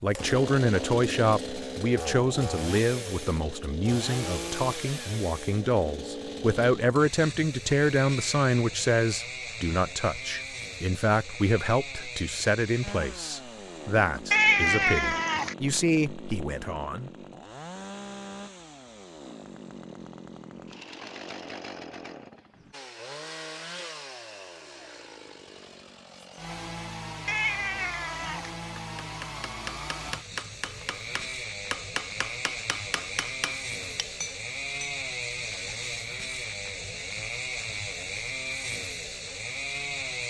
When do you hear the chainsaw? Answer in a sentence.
The chainsaw can be heard from 0.1 to 40.2 s.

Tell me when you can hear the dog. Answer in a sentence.
The dog can't be heard in this clip.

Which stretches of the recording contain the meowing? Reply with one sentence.
You can hear the meowing from 14.3 to 15.6 s and from 27.2 to 28.5 s.